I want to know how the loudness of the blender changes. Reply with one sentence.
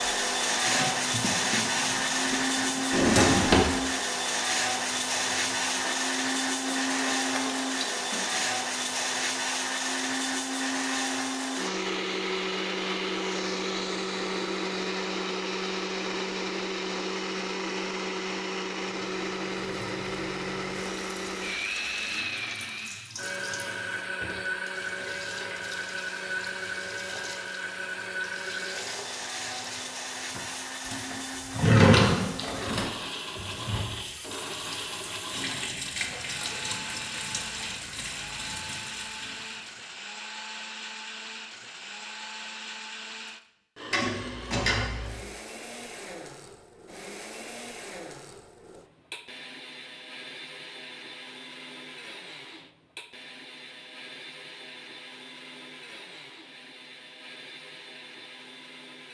The loudness of the blender goes down.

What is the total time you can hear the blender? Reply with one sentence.
You can hear the blender for 59 seconds altogether.